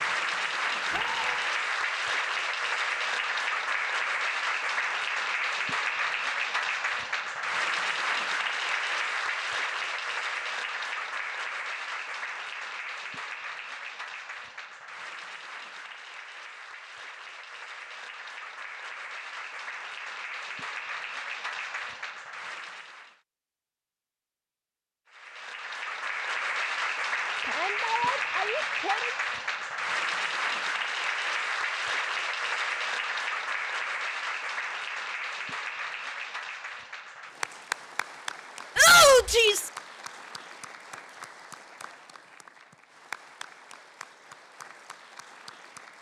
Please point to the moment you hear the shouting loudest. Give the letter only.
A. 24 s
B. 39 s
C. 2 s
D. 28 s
B.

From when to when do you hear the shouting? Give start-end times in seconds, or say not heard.
0.9-1.5, 27.4-29.1, 38.8-39.7.